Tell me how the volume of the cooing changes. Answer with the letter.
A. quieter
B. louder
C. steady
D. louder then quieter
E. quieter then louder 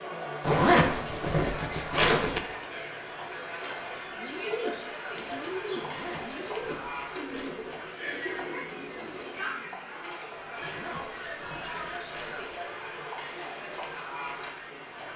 A.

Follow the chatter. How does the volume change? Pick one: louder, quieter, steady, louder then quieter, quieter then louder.
steady.